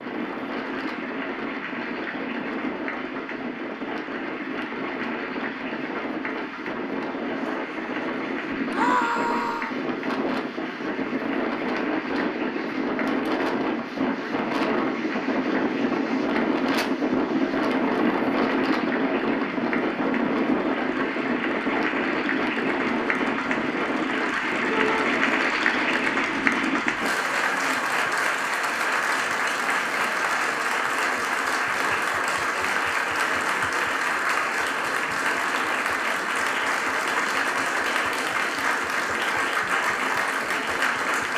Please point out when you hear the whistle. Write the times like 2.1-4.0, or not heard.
not heard.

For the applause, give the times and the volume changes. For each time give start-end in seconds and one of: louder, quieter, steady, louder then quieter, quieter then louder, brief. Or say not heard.
0.0-41.3 louder.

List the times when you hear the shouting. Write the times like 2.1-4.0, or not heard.
8.7-9.8, 24.7-25.1.